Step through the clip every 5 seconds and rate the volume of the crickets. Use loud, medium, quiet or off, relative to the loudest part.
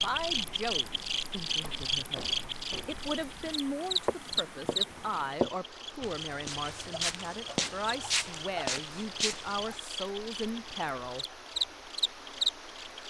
loud, medium, loud.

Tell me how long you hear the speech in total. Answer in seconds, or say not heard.
11 s.